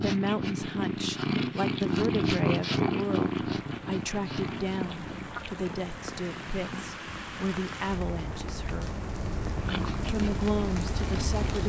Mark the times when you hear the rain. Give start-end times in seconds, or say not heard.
0.1-11.6.